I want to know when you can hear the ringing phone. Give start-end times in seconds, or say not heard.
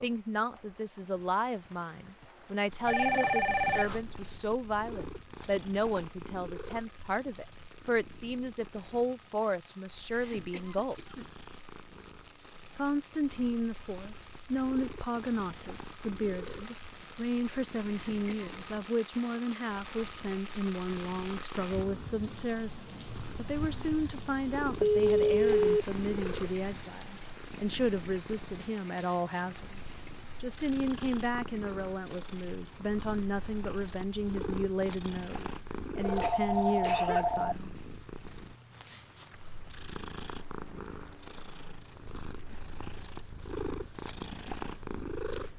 2.9-4.0, 24.8-25.9, 36.0-37.5.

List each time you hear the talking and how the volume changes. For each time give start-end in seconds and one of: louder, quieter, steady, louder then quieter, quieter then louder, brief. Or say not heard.
0.0-10.9 steady
12.8-37.8 steady.